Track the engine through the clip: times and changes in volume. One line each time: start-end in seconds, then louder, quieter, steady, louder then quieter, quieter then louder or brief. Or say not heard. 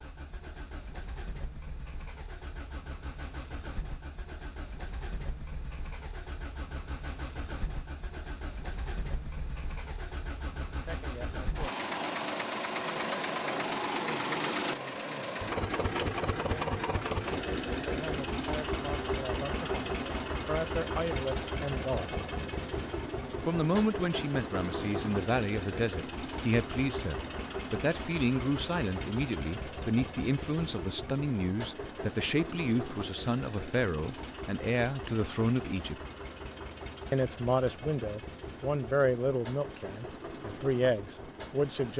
0.0-41.9 louder then quieter.